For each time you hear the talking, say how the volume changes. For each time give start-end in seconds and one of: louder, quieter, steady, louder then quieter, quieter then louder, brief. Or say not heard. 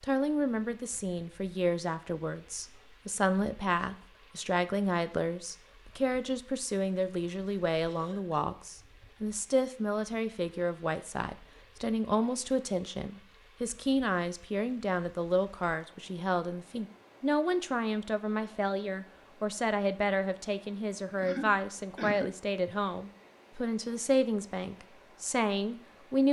0.0-26.2 steady.